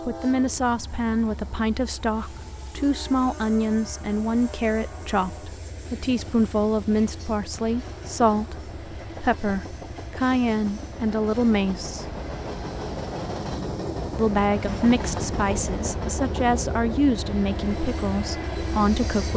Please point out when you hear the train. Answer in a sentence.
The train can be heard from 0.0 to 19.3 s.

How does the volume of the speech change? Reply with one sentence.
The loudness of the speech stays about the same.